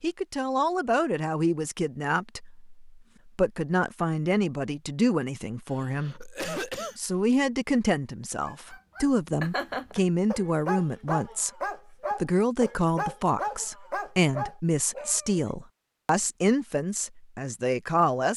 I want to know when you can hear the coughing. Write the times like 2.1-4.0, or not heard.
5.7-7.0.